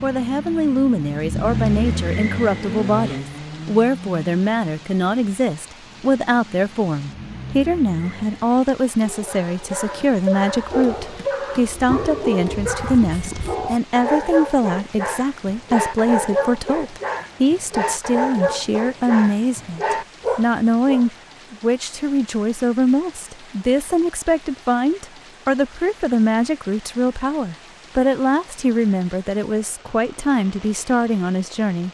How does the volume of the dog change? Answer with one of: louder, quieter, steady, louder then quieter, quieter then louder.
steady.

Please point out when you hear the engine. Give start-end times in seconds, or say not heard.
0.0-8.6.